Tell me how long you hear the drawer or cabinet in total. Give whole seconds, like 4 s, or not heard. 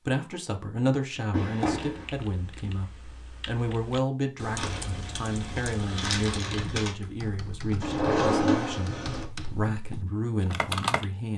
2 s.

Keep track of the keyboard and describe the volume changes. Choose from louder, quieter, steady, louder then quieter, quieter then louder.
louder.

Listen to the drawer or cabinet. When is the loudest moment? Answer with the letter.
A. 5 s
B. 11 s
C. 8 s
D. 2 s
C.